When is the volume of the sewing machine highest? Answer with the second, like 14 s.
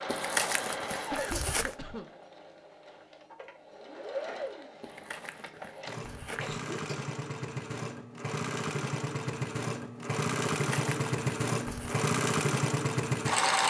13 s.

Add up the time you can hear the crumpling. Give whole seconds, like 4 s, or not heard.
5 s.